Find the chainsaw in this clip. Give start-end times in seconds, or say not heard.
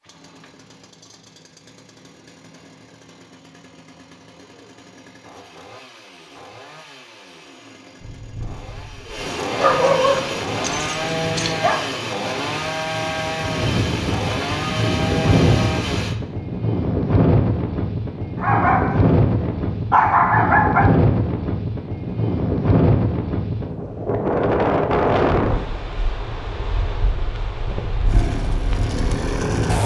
0.0-16.1, 28.1-29.8.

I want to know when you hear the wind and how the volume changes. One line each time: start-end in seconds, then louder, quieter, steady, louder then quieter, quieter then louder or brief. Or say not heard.
8.0-29.8 louder then quieter.